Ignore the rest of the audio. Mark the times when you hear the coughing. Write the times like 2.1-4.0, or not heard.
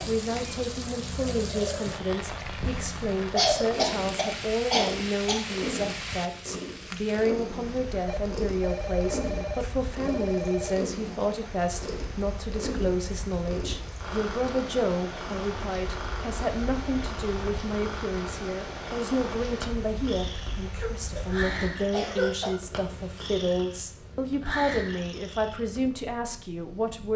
3.1-5.5, 20.7-21.2, 21.9-22.6.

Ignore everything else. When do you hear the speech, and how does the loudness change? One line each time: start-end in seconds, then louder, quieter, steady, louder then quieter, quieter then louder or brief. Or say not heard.
0.1-27.1 steady.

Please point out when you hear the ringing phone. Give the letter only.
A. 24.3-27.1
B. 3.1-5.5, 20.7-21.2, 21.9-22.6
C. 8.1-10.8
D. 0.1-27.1
C.